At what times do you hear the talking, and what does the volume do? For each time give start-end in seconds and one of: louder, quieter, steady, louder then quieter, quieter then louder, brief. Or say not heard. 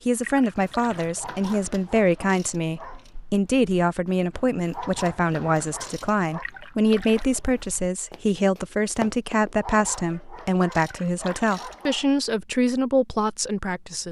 0.1-14.0 steady.